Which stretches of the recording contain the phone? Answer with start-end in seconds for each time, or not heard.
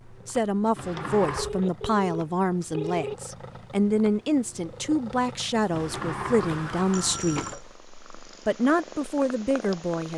1.4-3.1, 6.9-7.6.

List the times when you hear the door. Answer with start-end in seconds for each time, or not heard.
0.8-1.5, 5.7-7.8.